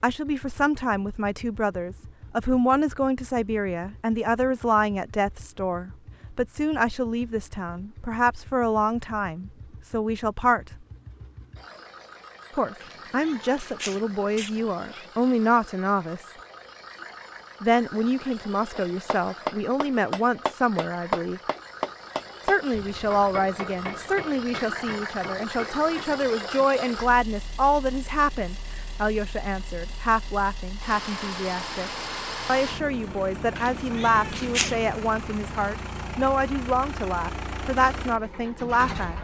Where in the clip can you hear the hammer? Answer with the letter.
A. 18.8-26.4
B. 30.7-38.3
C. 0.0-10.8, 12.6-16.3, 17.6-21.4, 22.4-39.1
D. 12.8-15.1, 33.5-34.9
A.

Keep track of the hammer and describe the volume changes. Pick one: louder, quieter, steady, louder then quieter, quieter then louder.
quieter.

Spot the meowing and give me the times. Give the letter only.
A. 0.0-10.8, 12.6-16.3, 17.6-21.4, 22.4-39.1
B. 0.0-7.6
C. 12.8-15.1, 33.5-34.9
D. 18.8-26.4
C.